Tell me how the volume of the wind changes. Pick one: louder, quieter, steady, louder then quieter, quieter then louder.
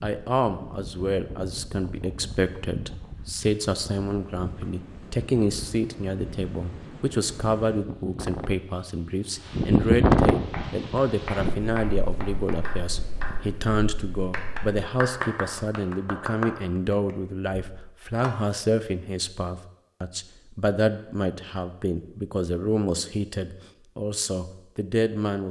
louder then quieter.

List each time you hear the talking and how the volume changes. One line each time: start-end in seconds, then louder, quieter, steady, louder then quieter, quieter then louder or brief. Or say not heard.
0.0-25.4 steady.